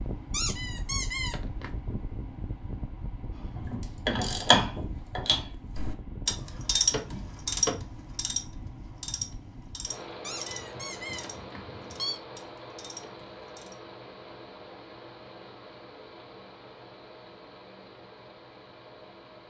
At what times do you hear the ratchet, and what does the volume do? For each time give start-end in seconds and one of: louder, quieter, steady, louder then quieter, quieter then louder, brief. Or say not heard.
3.4-13.8 quieter.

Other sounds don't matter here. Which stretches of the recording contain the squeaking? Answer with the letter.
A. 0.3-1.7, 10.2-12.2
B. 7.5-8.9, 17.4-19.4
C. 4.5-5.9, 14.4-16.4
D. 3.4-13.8
A.